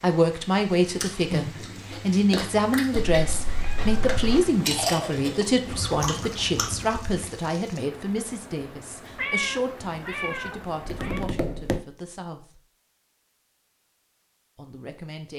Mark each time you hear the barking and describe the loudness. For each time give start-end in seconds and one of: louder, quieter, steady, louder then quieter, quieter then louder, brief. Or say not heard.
not heard.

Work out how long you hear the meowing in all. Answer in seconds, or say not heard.
3 s.